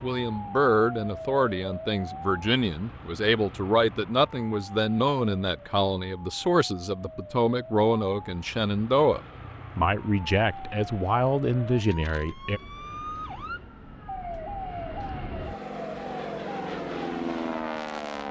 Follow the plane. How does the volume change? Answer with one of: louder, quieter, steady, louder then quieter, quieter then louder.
louder.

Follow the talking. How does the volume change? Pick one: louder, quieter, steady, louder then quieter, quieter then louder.
steady.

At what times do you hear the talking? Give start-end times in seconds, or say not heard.
0.0-12.6.